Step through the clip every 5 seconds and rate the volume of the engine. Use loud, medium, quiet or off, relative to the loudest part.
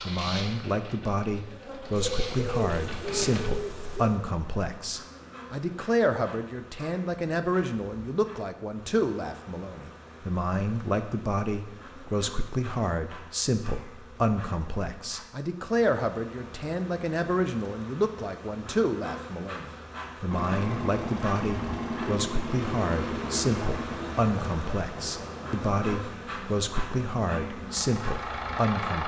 medium, off, off, off, loud, loud.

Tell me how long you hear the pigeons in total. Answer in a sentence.
The pigeons can be heard for 2 seconds in total.